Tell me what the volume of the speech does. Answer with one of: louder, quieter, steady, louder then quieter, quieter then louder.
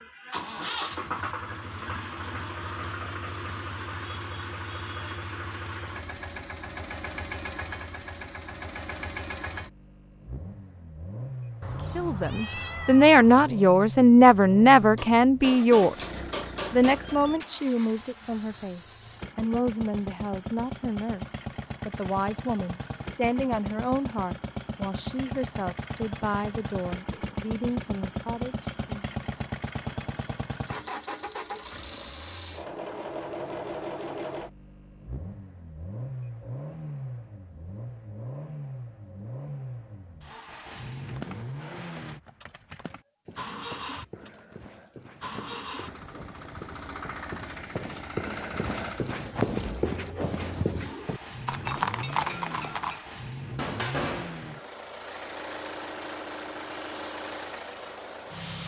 quieter.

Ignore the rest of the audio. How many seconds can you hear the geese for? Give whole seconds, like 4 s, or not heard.
not heard.